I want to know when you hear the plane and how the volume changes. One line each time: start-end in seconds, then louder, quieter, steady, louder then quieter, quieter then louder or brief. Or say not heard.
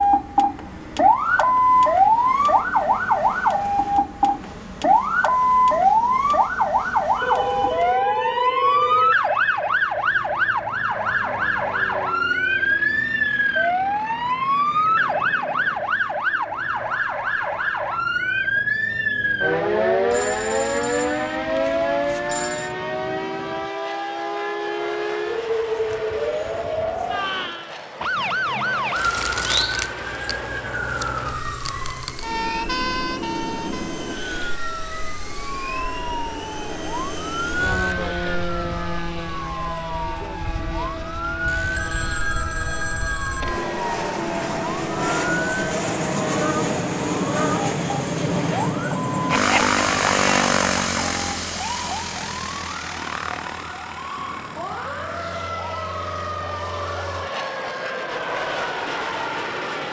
0.0-59.8 louder.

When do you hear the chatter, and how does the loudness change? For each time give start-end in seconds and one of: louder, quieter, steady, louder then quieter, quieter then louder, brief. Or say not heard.
not heard.